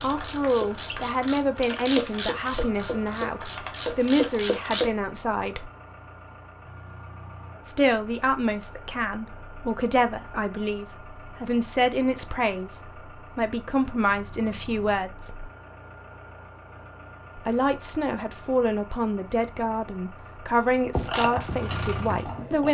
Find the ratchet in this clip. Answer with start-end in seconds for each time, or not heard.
0.0-4.9, 20.9-22.6.